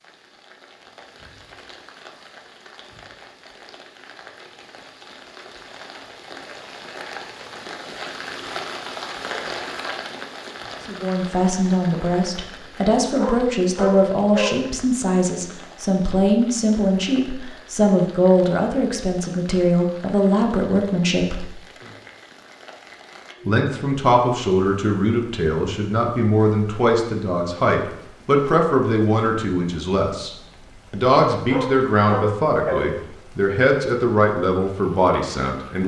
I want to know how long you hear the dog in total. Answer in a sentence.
You can hear the dog for 3 seconds altogether.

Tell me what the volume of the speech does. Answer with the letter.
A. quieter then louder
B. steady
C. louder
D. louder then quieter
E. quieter
B.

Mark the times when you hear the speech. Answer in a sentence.
The speech can be heard from 10.8 to 21.4 s, from 23.4 to 30.3 s and from 30.9 to 35.8 s.